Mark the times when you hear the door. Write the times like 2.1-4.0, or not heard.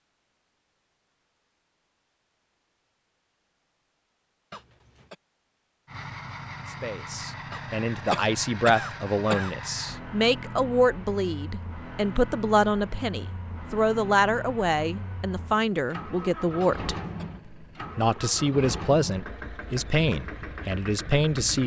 not heard.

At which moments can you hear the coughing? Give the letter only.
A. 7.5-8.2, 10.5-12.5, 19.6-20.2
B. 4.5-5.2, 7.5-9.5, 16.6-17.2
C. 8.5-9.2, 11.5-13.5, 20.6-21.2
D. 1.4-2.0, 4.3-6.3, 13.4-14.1
B.